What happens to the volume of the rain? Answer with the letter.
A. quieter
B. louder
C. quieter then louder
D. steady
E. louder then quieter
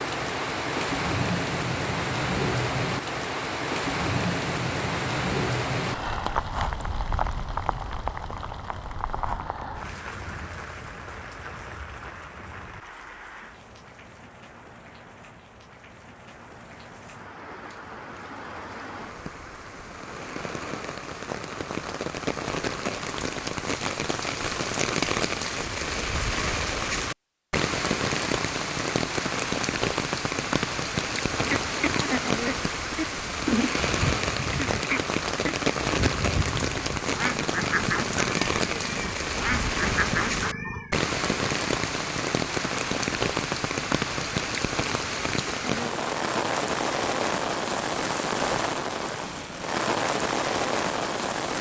C.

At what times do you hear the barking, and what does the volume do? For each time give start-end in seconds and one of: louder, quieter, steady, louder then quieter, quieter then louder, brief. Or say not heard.
not heard.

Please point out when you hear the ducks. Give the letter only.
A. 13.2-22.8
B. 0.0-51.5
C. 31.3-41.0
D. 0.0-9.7
C.